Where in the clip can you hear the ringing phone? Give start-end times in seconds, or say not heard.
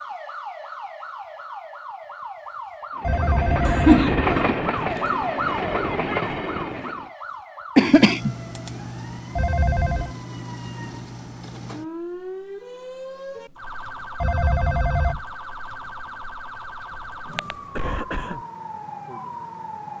3.0-4.3, 9.3-10.2, 14.2-15.2.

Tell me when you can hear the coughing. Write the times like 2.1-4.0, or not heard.
3.6-4.2, 7.8-8.3, 16.9-18.4.